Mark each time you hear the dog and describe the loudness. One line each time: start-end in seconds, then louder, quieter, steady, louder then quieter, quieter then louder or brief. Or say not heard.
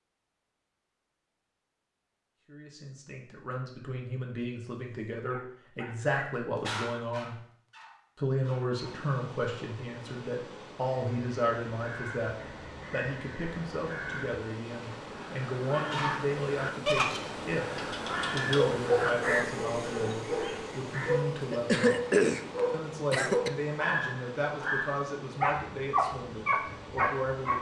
4.9-9.1 louder then quieter
15.8-27.5 steady.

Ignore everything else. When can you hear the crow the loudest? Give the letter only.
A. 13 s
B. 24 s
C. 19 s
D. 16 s
C.